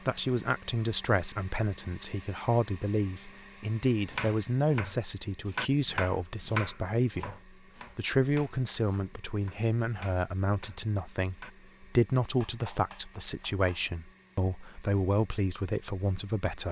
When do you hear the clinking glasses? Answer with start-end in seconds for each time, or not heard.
not heard.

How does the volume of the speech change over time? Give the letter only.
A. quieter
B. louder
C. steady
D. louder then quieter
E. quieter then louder
C.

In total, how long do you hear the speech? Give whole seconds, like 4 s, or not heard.
16 s.